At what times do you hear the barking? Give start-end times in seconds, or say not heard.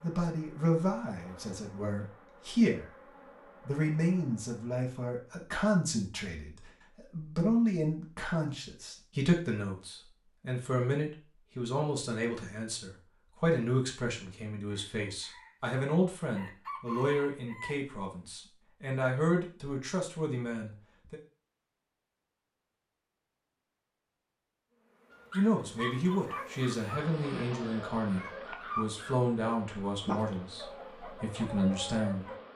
25.1-32.4.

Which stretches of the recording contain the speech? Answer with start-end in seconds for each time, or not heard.
0.0-3.0, 3.6-21.1, 25.3-32.3.